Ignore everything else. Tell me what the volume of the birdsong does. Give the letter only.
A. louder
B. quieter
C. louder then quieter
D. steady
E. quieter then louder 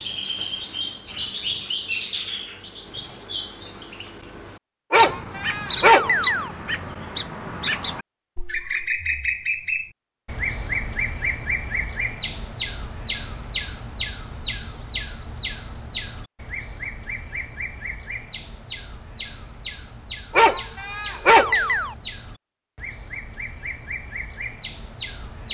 B.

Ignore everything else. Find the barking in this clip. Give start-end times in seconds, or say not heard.
4.9-6.5, 20.3-21.9.